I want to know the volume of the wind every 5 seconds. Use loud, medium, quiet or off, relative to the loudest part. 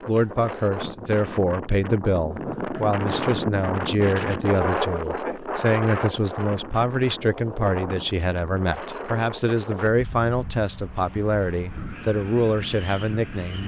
loud, loud, medium.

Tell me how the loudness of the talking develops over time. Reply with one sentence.
The loudness of the talking stays about the same.